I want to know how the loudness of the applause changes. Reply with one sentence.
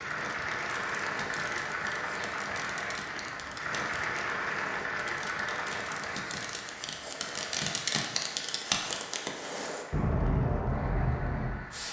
The volume of the applause goes down.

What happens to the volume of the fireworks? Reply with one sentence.
The volume of the fireworks goes up.